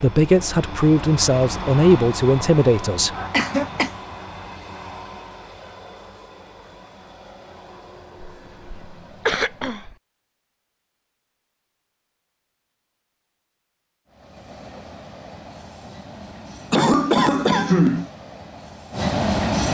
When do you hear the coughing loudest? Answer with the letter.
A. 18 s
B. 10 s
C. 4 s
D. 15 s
A.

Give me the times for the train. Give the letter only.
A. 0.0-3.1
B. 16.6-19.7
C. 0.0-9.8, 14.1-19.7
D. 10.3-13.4
C.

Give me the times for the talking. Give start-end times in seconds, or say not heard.
0.0-3.1.